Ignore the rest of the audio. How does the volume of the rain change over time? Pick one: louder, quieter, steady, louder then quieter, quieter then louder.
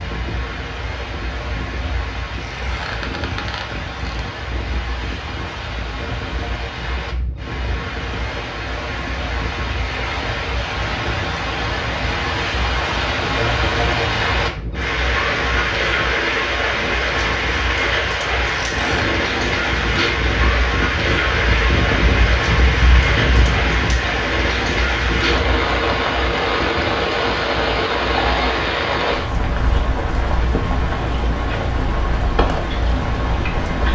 louder.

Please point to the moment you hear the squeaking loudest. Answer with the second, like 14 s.
19 s.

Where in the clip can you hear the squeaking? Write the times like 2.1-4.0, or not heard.
2.5-4.2, 18.6-19.1.